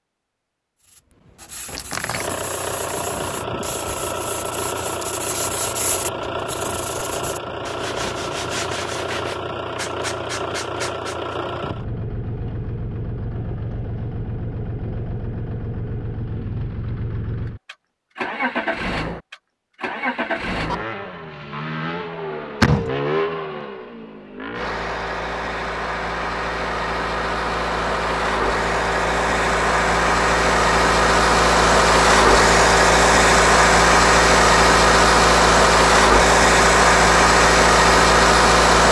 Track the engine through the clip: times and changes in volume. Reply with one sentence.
You can hear the engine from 2.1 to 38.8 s, getting louder.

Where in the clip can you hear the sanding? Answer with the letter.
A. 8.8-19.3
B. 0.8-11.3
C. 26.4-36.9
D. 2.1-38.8
B.